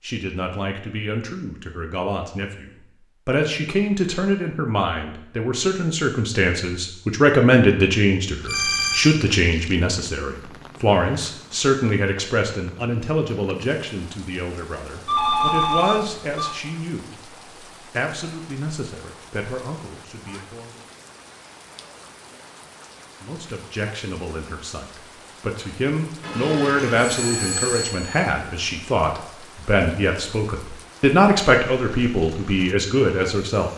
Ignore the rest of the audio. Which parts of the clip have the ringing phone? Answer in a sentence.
You can hear the ringing phone from 8.4 to 9.2 s, from 15.1 to 16.6 s and from 26.2 to 28.2 s.